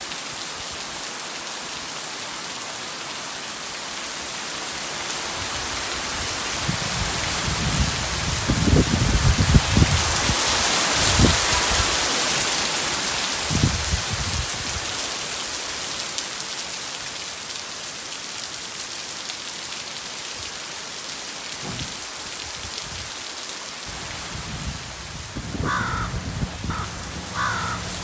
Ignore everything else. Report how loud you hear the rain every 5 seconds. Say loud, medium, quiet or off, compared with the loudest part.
medium, loud, loud, medium, medium, medium.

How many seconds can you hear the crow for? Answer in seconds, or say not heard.
3 s.